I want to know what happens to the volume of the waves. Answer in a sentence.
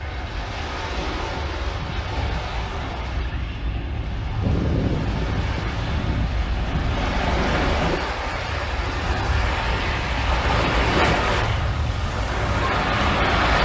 The loudness of the waves goes up.